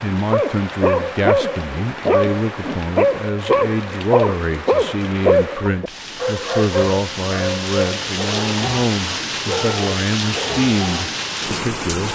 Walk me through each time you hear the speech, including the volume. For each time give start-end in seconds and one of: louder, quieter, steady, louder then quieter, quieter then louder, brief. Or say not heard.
0.0-12.1 steady.